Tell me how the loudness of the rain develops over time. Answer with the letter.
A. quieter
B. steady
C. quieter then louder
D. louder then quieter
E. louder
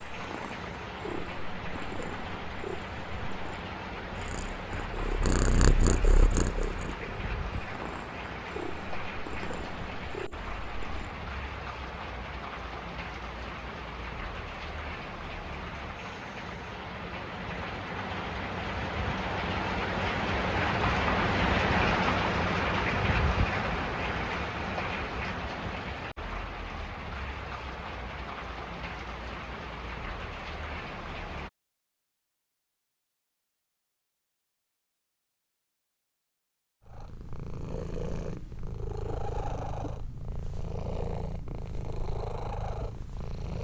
D.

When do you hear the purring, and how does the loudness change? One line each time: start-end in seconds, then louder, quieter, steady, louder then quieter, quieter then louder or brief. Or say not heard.
0.1-11.1 louder then quieter
36.9-43.5 steady.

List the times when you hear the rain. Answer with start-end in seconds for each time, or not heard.
0.0-31.5.